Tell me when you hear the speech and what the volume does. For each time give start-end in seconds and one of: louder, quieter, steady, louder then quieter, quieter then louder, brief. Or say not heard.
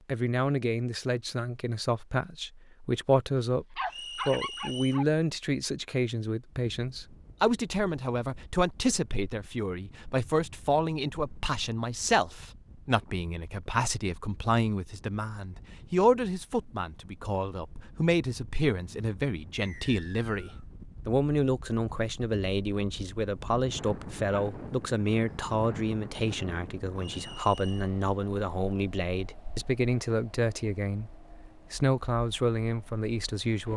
0.1-33.7 steady.